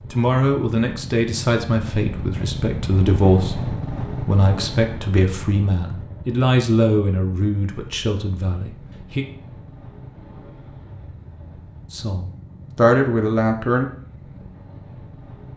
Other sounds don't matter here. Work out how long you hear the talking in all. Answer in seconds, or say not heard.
11 s.